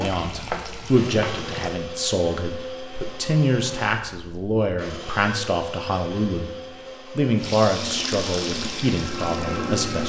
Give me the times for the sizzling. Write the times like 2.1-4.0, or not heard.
0.0-1.8, 7.3-9.9.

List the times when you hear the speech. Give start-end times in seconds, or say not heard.
0.0-6.5, 7.2-10.0.